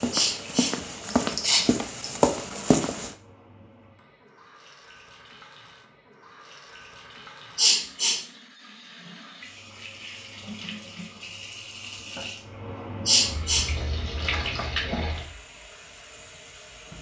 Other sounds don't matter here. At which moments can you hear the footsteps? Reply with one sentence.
The footsteps can be heard from 0.0 to 3.1 s.